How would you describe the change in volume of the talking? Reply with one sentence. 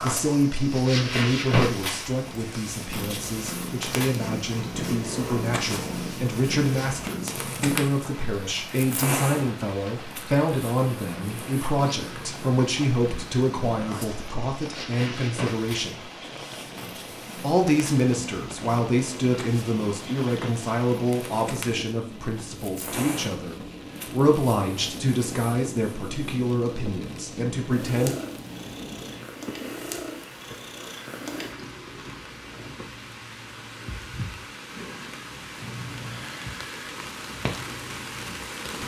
The volume of the talking stays about the same.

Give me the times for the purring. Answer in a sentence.
You can hear the purring from 0.0 to 38.8 s.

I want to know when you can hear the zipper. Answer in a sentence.
You can't hear the zipper here.